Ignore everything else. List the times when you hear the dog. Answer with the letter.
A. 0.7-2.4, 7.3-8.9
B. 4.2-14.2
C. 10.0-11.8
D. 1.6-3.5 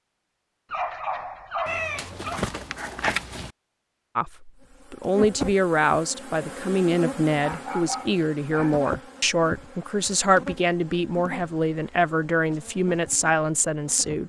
A.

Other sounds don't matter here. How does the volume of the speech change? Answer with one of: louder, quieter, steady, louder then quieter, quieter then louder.
steady.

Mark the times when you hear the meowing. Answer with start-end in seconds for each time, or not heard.
1.6-3.5.